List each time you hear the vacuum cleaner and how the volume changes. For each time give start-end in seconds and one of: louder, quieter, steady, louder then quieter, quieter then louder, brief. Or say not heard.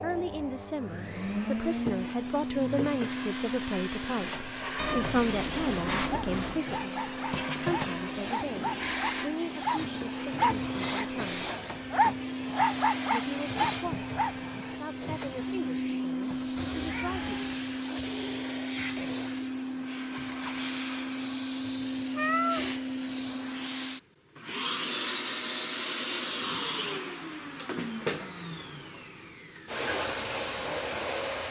0.0-31.4 steady.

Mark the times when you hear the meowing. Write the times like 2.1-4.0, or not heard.
4.8-6.6, 16.6-17.6, 22.1-22.6.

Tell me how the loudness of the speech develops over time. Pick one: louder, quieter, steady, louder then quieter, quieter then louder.
quieter.